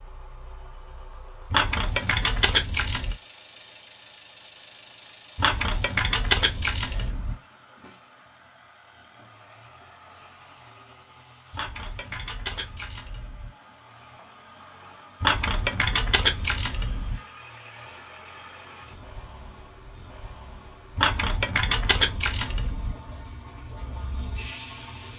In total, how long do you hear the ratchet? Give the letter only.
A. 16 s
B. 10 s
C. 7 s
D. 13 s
B.